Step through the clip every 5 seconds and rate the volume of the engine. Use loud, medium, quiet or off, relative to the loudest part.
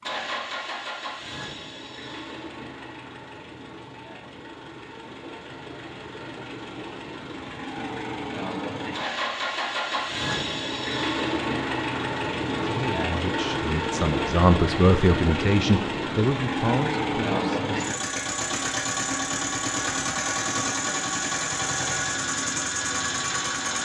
medium, medium, loud, loud, loud.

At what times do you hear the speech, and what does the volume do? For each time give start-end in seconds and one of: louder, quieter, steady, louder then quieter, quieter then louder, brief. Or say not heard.
12.6-18.0 louder then quieter.